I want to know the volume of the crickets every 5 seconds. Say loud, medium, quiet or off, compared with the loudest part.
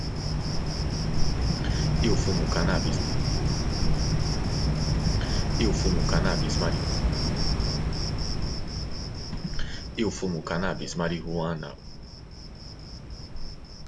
loud, loud, quiet.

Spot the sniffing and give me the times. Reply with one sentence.
The sniffing can be heard from 1.4 to 3.0 s, from 5.0 to 6.8 s and from 9.3 to 11.8 s.